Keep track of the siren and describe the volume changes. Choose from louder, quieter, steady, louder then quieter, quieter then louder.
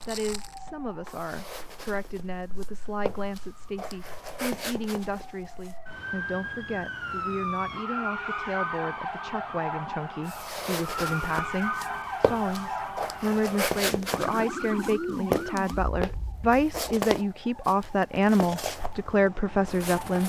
louder then quieter.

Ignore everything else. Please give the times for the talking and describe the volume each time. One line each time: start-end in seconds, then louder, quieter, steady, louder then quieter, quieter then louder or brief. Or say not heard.
0.1-20.2 louder.